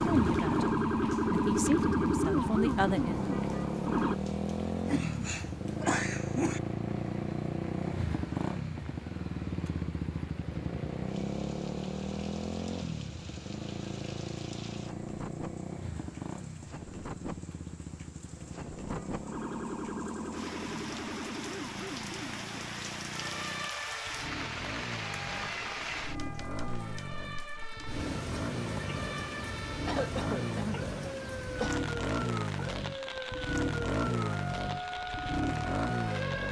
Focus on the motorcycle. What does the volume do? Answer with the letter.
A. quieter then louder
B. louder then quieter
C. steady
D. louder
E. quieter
A.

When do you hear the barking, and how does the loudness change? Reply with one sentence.
You can't hear the barking here.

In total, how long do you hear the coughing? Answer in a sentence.
The coughing can be heard for 4 seconds in total.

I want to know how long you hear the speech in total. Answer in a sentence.
You can hear the speech for 3 seconds altogether.